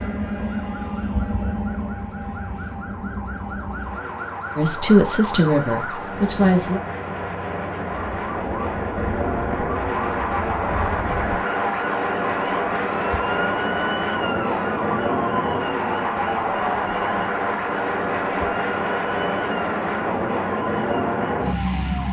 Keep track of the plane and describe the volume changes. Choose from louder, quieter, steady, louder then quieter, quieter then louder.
louder.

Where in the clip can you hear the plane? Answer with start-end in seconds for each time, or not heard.
0.0-22.0.